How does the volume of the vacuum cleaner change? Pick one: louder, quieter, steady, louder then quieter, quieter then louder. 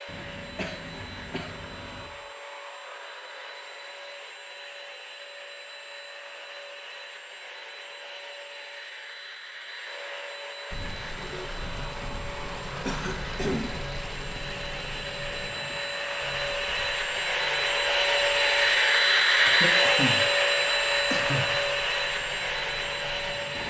louder.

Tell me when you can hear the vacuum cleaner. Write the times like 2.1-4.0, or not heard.
0.0-23.6.